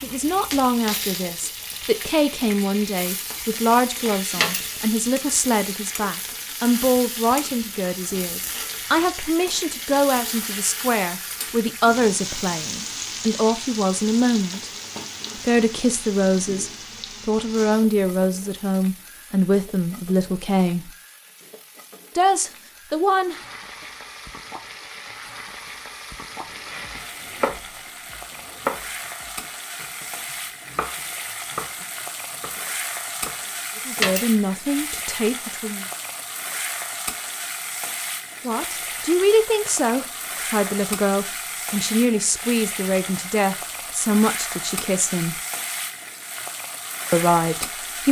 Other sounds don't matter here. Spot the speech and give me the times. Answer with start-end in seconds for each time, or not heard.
0.0-14.7, 15.3-20.9, 22.1-23.4, 33.9-35.9, 38.4-45.4, 47.1-48.0.